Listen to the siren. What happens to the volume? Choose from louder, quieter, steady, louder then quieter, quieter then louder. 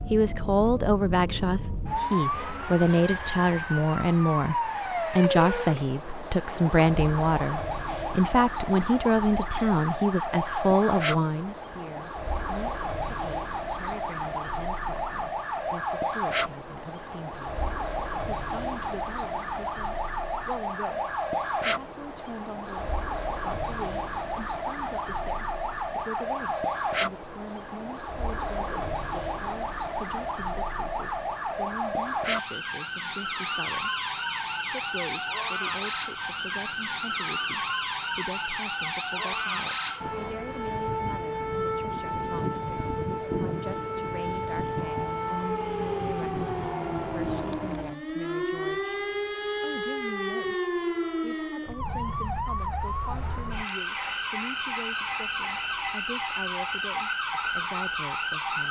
steady.